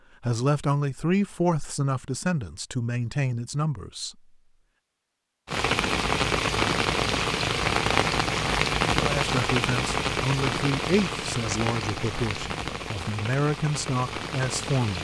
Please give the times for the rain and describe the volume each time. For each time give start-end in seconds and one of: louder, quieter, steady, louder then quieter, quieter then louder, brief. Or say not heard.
5.5-14.9 quieter.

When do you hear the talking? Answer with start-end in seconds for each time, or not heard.
0.2-4.2, 8.9-14.9.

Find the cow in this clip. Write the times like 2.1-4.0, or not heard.
not heard.